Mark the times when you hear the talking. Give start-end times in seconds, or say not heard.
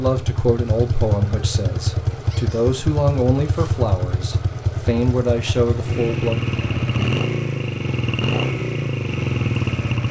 0.0-6.4.